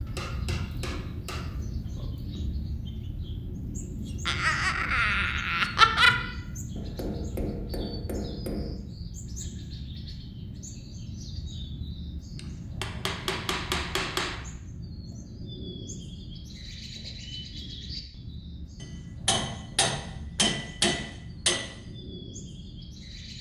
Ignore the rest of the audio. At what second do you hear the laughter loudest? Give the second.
6 s.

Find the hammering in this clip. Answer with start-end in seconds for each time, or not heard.
0.1-2.0, 6.8-8.8, 12.3-14.3, 18.8-21.6.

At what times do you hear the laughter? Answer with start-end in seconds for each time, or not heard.
4.2-6.2.